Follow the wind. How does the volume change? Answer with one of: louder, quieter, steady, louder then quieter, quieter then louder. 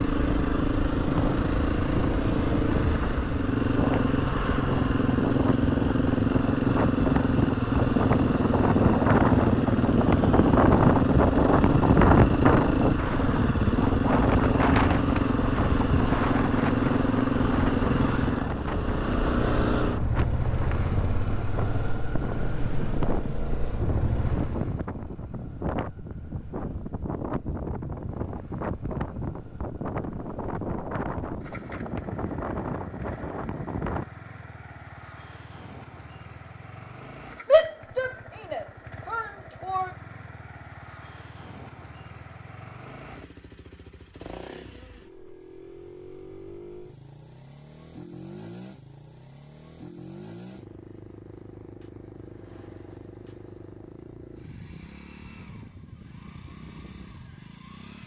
louder then quieter.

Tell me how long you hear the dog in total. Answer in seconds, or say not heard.
not heard.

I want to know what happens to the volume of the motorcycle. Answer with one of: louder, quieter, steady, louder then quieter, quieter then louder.
quieter.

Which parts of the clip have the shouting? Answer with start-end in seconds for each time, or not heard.
37.5-39.9.